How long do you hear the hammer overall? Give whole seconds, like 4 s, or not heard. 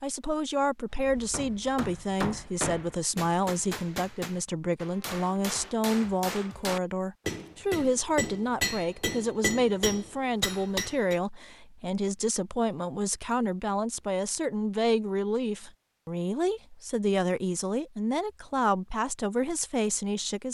10 s.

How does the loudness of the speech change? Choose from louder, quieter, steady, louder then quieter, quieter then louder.
steady.